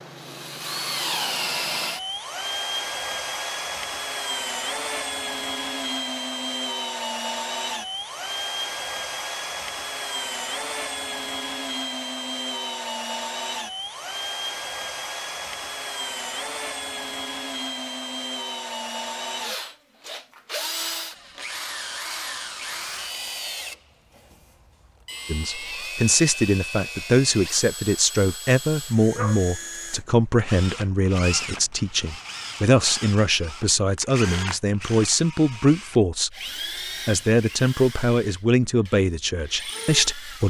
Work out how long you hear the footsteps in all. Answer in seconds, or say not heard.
not heard.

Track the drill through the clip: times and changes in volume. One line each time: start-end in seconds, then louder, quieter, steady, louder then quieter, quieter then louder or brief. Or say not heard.
0.0-40.4 quieter.